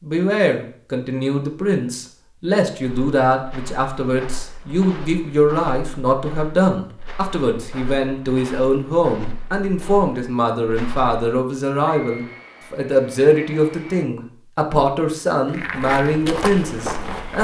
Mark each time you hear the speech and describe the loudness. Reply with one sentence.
The speech can be heard from 0.0 to 17.4 s, at a steady volume.